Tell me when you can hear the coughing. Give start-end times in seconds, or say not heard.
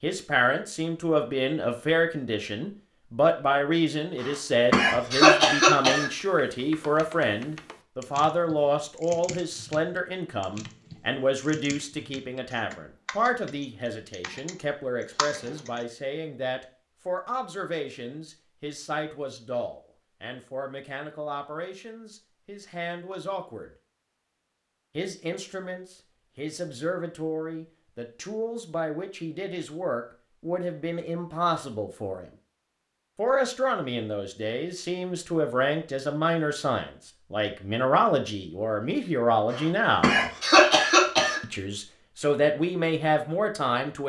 4.2-6.1, 39.5-41.4.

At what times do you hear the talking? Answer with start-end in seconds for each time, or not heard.
0.0-23.7, 24.9-32.3, 33.1-40.2, 41.4-44.0.